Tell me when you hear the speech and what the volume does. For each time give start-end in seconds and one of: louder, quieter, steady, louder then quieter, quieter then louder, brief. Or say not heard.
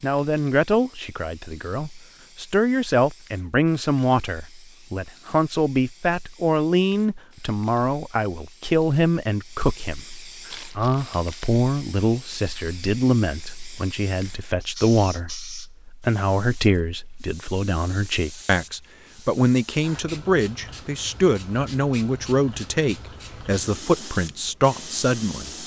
0.0-25.6 steady.